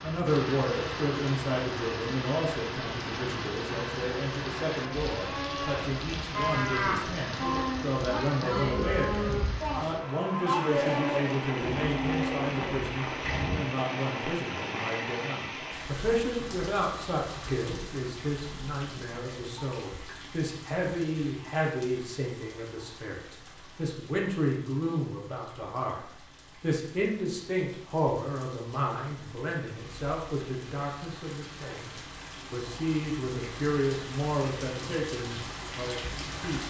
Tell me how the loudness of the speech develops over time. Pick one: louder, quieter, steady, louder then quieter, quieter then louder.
steady.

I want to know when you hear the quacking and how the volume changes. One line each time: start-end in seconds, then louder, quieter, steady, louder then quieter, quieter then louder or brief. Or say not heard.
not heard.